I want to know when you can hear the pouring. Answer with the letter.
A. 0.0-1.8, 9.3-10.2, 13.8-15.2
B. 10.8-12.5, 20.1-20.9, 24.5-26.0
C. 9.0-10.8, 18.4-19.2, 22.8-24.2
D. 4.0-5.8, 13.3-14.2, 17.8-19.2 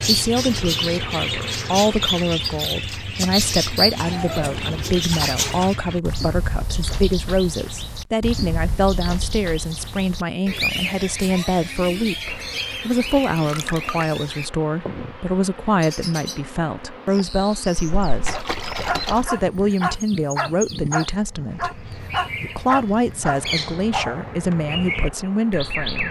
D.